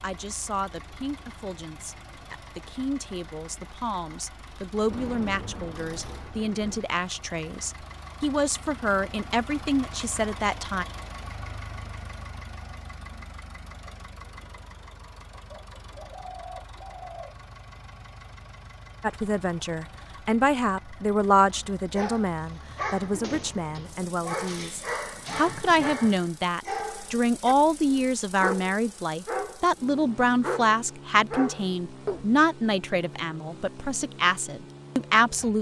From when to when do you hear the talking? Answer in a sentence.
You can hear the talking from 0.0 to 10.8 s and from 19.0 to 35.5 s.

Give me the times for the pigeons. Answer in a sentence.
The pigeons can be heard from 15.5 to 17.4 s.